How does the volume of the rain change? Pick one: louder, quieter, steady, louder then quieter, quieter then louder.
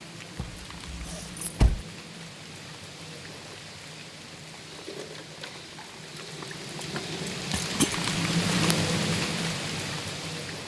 louder.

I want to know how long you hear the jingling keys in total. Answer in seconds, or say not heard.
3 s.